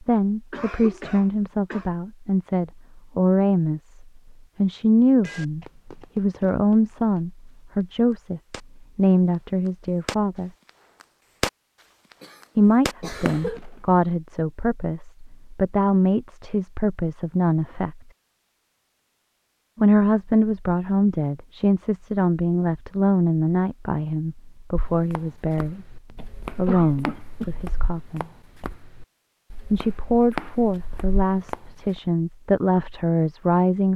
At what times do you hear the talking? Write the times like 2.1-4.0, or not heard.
0.0-10.5, 12.6-18.0, 19.8-28.2, 29.7-33.9.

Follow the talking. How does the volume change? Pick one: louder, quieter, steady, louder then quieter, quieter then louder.
steady.